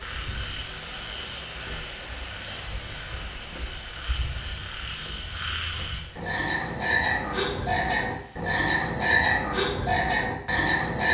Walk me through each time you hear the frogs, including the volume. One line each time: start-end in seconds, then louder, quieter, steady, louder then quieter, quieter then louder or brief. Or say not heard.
0.0-11.0 louder.